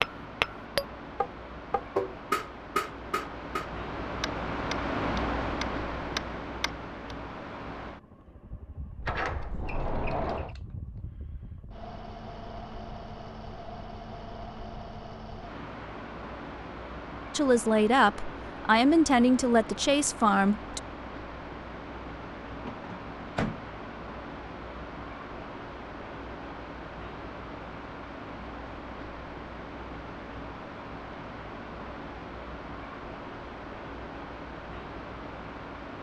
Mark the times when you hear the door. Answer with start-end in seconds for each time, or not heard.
9.0-10.6, 22.6-23.6.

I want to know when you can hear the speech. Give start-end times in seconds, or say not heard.
17.4-20.8.